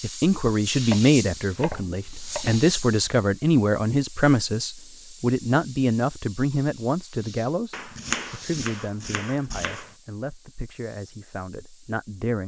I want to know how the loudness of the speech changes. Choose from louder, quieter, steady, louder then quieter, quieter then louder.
quieter.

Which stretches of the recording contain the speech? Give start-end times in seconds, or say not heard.
0.0-12.4.